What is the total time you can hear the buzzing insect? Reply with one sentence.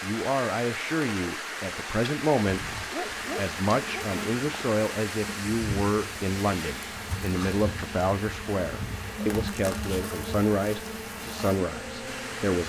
You can hear the buzzing insect for 10 seconds altogether.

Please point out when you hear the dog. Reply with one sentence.
You can hear the dog from 2.5 to 4.0 s.